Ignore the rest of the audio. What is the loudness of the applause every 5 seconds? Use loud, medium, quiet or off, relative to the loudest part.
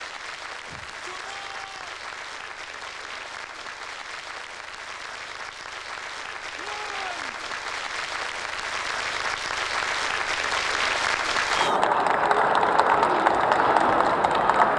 quiet, medium, loud.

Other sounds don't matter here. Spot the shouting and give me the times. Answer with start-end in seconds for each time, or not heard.
0.7-1.9, 6.5-7.3, 11.5-11.9.